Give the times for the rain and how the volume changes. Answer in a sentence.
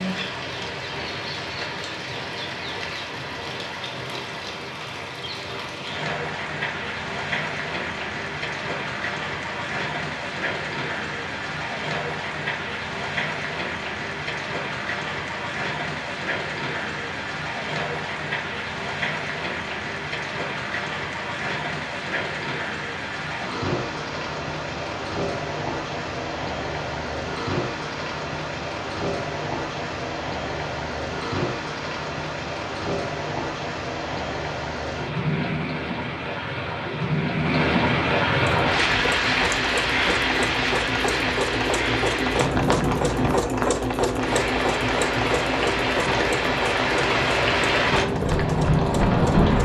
The rain can be heard from 0.0 to 49.6 s, getting louder.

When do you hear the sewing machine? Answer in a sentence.
You can hear the sewing machine from 38.5 to 49.6 s.